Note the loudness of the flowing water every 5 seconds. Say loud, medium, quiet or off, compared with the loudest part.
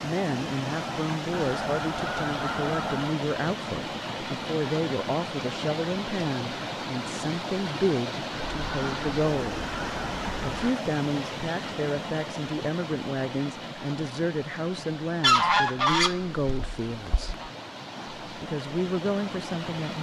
loud, loud, loud, medium.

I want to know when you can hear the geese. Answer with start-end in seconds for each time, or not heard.
1.3-3.2, 8.4-10.8, 15.2-17.5.